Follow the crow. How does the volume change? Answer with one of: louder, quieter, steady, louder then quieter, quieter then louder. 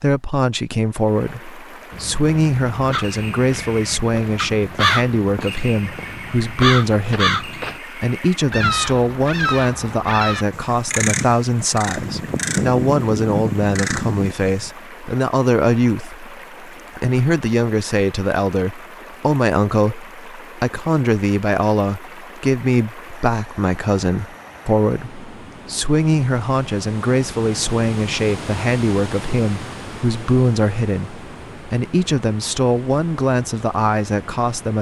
steady.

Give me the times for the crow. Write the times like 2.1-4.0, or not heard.
2.9-14.7.